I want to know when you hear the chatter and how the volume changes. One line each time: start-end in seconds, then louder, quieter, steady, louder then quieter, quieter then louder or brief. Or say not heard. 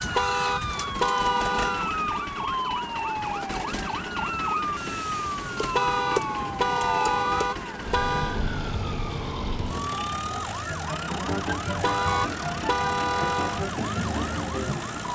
not heard.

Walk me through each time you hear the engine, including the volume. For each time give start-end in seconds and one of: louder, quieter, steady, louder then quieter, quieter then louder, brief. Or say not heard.
0.0-15.0 steady.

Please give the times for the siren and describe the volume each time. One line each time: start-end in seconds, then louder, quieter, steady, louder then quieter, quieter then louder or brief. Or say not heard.
0.0-15.0 steady.